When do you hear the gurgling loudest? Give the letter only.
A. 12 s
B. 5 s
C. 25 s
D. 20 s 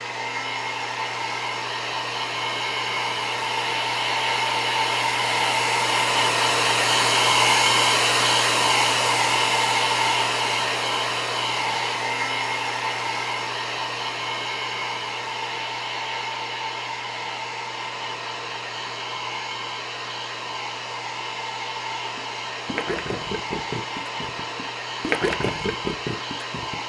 C.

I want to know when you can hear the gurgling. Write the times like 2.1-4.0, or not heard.
22.1-26.8.